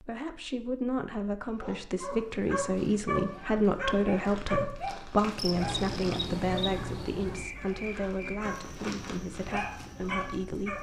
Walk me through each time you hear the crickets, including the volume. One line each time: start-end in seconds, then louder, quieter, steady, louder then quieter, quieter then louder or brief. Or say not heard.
5.3-10.7 quieter.